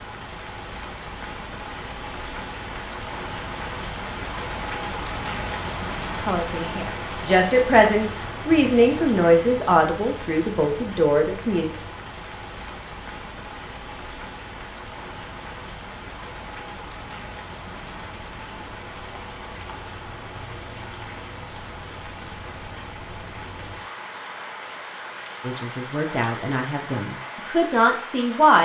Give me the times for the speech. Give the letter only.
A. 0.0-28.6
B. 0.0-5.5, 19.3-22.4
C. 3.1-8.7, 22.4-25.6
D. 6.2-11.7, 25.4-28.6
D.